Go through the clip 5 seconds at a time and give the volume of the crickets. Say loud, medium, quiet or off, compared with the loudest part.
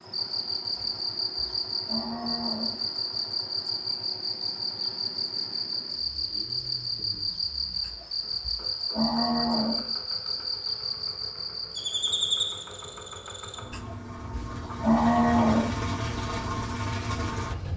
loud, loud, loud, off.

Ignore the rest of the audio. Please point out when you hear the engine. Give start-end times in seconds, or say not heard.
0.0-17.7.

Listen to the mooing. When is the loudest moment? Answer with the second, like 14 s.
15 s.